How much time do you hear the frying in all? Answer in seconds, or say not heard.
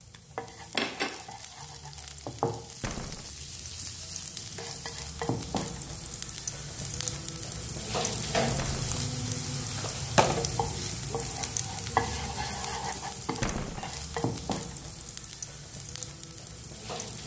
17 s.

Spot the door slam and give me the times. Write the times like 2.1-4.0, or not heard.
2.8-3.3, 8.6-9.0, 13.4-13.9.